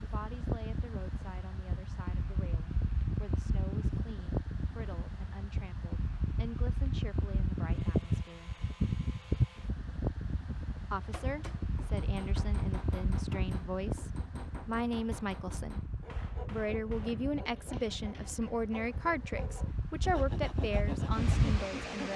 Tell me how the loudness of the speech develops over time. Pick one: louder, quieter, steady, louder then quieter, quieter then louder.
louder.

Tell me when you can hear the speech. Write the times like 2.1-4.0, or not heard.
0.0-8.6, 10.8-15.8, 16.5-22.1.